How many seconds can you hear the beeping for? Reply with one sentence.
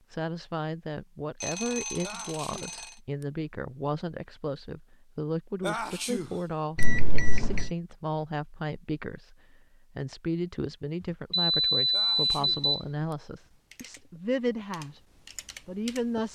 You can hear the beeping for 4 seconds altogether.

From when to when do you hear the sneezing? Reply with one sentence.
The sneezing can be heard from 2.0 to 3.2 s, from 5.6 to 6.8 s and from 11.9 to 13.2 s.